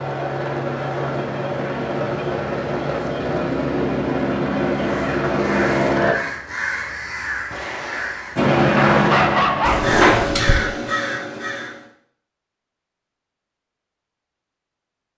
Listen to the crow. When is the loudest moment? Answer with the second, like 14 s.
10 s.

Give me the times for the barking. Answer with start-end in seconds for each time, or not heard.
8.8-9.9.